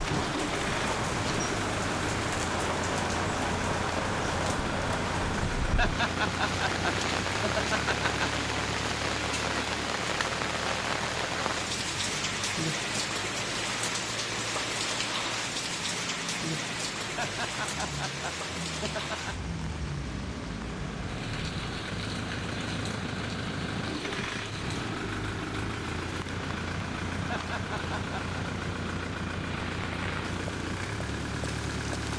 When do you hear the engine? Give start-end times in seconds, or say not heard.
0.0-32.1.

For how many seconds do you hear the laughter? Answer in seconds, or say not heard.
6 s.